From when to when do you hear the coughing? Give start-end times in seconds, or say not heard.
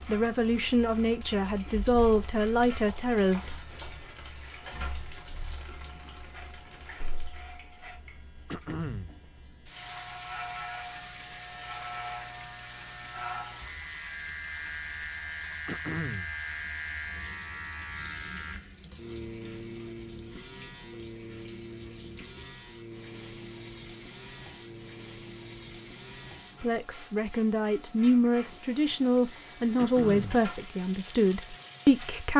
8.4-9.2, 15.7-16.4, 29.8-30.4.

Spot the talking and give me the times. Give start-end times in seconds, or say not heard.
0.1-3.5, 26.6-32.3.